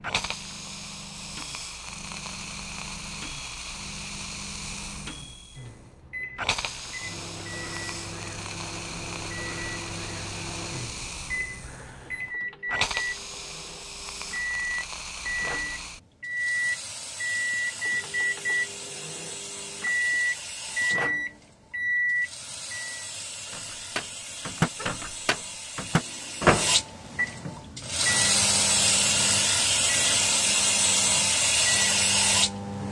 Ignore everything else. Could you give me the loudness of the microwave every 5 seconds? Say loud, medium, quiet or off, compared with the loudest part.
quiet, quiet, medium, loud, loud, loud, medium.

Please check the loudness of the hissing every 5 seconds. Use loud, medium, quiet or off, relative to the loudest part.
quiet, quiet, quiet, quiet, quiet, loud, loud.